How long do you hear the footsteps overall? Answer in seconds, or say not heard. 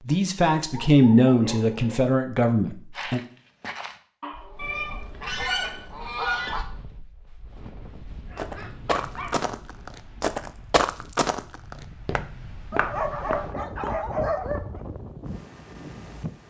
11 s.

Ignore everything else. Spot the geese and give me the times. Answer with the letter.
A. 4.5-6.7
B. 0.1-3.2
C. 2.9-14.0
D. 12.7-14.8
A.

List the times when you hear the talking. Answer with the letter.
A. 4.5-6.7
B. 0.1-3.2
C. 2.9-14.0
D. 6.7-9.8
B.